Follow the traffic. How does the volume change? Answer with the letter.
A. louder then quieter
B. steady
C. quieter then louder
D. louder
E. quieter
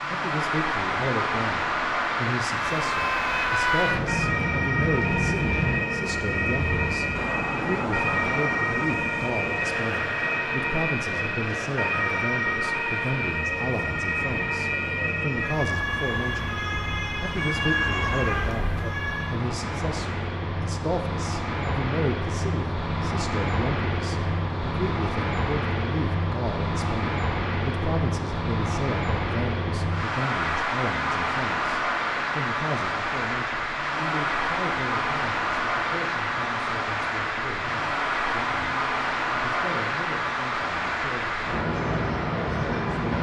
C.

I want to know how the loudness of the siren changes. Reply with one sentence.
The loudness of the siren stays about the same.